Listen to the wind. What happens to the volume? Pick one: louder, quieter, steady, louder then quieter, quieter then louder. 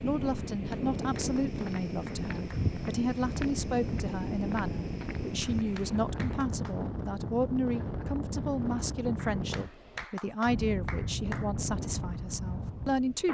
steady.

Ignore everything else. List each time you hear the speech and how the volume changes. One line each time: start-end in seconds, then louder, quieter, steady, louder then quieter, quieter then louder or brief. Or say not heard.
0.0-13.3 steady.